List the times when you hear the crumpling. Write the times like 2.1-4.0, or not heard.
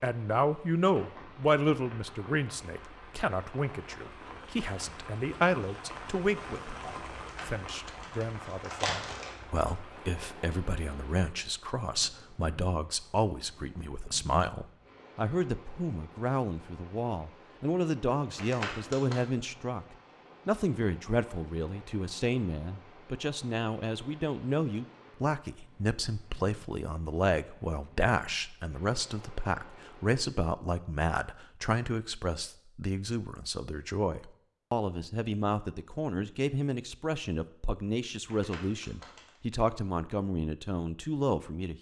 7.2-9.3, 18.4-19.2, 38.2-39.4.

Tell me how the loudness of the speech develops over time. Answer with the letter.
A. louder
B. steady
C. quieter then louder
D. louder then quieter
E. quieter
B.